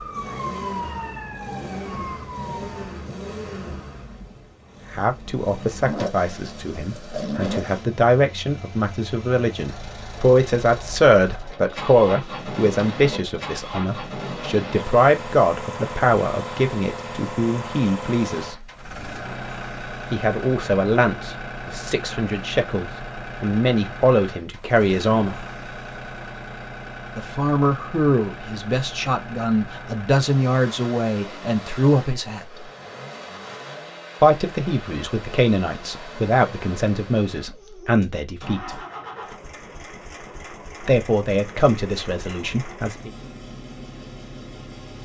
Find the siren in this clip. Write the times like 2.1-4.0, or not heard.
0.0-3.0.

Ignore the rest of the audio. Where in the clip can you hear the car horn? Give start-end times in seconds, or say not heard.
not heard.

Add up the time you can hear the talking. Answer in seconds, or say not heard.
31 s.